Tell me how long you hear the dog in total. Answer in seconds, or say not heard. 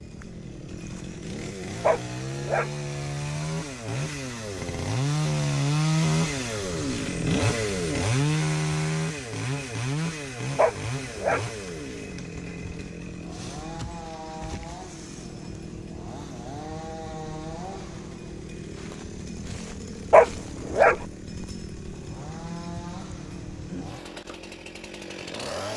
3 s.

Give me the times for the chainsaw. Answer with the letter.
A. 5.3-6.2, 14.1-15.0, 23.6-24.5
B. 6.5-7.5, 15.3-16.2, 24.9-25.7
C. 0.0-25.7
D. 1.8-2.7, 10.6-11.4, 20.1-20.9
C.